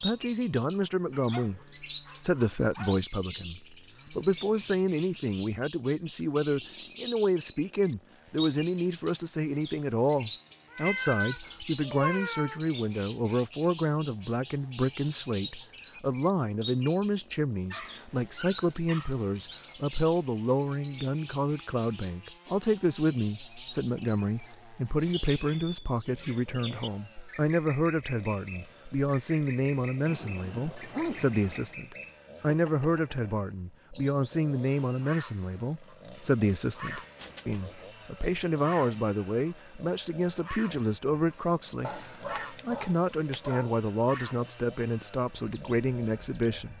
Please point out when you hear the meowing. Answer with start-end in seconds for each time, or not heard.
10.7-12.6, 37.1-37.9.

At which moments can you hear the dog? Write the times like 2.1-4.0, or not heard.
1.1-3.0, 17.7-19.2, 30.1-31.8, 41.8-43.7.